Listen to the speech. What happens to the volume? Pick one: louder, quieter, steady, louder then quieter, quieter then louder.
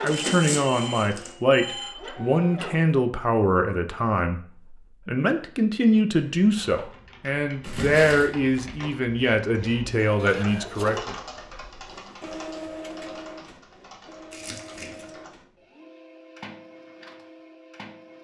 steady.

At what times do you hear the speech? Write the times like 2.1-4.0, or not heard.
0.0-11.2.